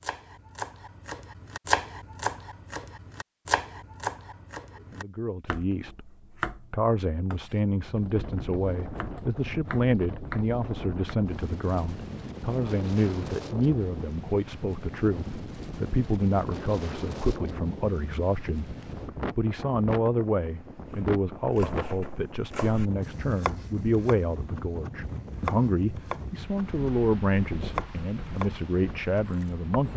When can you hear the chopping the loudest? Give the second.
2 s.